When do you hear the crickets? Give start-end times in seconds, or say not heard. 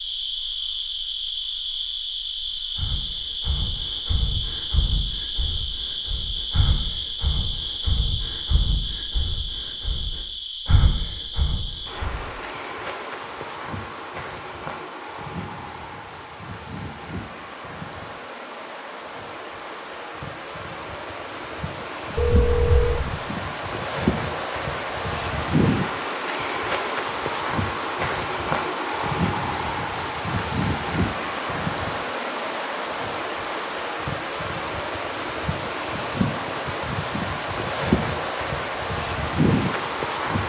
0.0-40.4.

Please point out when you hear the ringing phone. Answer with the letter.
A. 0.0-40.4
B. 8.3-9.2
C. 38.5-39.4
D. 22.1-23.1
D.